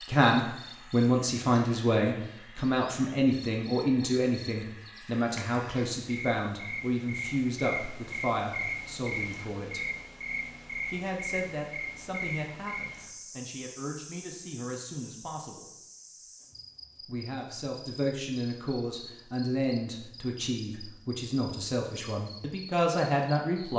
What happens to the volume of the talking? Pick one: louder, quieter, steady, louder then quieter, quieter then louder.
quieter then louder.